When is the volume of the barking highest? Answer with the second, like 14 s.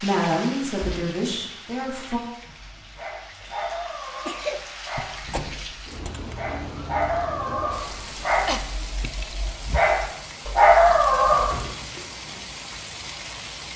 11 s.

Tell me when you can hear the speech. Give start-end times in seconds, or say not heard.
0.0-2.2.